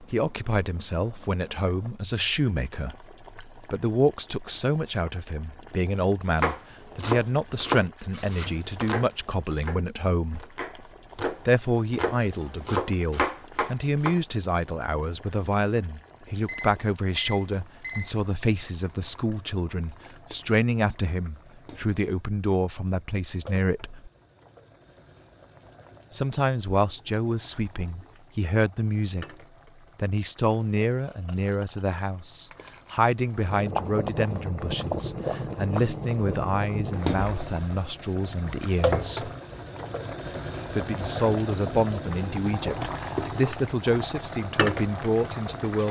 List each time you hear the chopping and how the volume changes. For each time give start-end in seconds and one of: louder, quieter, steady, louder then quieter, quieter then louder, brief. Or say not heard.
6.4-14.2 quieter then louder.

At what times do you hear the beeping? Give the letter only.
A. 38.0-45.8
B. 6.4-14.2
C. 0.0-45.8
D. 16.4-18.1
D.